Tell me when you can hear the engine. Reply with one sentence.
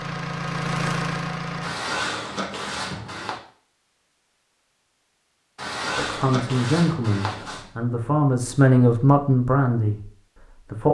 You can hear the engine from 0.0 to 1.8 s.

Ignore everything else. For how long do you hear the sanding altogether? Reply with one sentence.
You can hear the sanding for 4 seconds altogether.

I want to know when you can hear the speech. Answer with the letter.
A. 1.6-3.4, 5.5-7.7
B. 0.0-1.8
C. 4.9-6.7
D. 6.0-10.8
D.